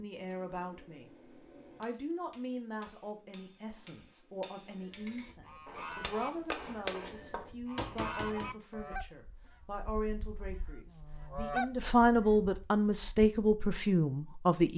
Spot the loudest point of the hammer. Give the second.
7 s.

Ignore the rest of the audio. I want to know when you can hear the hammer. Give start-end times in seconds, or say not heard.
0.2-8.6.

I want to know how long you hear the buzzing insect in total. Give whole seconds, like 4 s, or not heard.
not heard.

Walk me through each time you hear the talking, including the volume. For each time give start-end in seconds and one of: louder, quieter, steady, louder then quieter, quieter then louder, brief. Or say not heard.
0.0-1.1 brief
1.8-14.7 louder.